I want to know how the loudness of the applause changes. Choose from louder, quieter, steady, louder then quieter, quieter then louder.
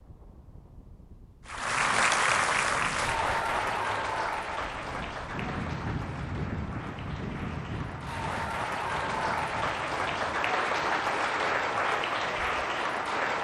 quieter then louder.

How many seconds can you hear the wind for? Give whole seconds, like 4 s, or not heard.
13 s.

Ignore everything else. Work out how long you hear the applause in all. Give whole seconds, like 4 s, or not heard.
12 s.